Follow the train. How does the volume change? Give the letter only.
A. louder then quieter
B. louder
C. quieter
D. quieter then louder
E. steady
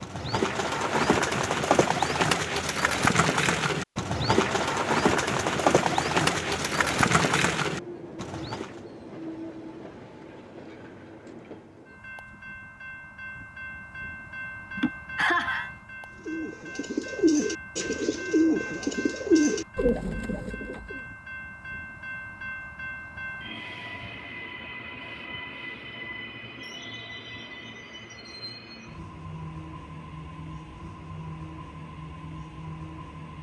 E.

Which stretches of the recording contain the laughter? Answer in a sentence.
The laughter can be heard from 14.8 to 15.7 s.